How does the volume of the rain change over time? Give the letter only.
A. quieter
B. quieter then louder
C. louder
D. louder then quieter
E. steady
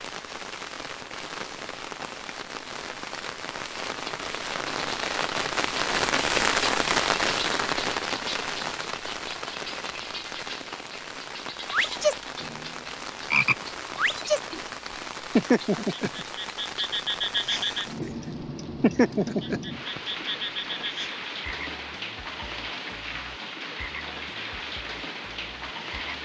D.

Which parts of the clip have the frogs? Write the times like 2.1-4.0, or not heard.
11.7-12.7, 13.3-14.6, 15.3-18.1, 18.8-26.2.